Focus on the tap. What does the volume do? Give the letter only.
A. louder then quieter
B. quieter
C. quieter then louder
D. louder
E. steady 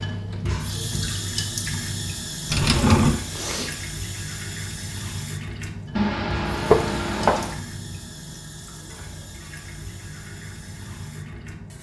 B.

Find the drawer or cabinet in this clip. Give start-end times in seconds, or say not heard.
2.5-3.1, 6.7-7.5.